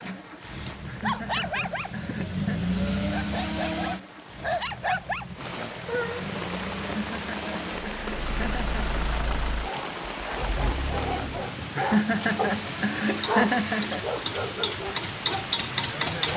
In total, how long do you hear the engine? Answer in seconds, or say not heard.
16 s.